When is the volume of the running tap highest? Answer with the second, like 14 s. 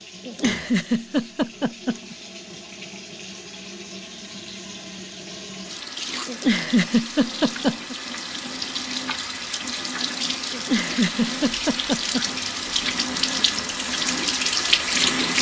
15 s.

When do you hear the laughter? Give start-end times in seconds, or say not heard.
0.2-2.1, 6.2-8.0, 10.5-12.2.